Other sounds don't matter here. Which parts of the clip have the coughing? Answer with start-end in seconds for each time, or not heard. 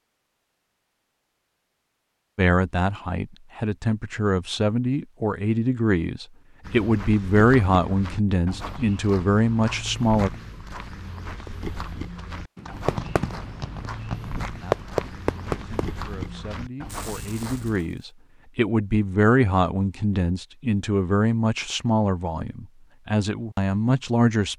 not heard.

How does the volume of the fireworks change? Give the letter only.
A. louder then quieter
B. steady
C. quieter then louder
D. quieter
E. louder
A.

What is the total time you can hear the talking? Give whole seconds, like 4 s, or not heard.
18 s.